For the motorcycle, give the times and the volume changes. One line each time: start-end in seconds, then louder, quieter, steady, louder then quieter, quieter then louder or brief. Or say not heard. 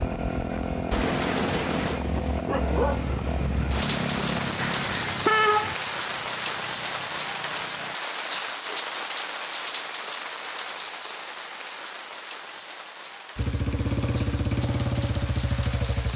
0.0-8.0 quieter
13.3-16.1 brief.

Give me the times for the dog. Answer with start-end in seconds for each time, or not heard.
2.5-3.1.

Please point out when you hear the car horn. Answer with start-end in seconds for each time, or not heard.
4.5-5.8.